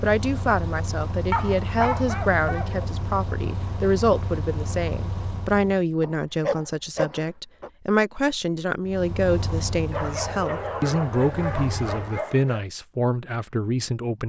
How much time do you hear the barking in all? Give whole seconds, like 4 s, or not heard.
6 s.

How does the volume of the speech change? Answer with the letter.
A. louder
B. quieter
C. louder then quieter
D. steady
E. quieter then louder
D.